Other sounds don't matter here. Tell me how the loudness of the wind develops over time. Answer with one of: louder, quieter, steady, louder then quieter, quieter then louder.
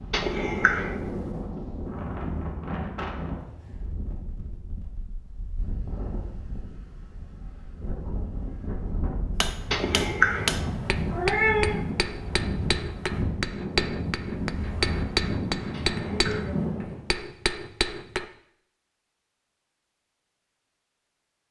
quieter then louder.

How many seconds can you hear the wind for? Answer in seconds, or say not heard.
17 s.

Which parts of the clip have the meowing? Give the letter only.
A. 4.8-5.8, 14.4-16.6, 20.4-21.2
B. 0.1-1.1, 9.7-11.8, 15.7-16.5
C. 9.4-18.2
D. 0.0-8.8
B.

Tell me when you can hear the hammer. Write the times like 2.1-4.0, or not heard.
9.4-18.2.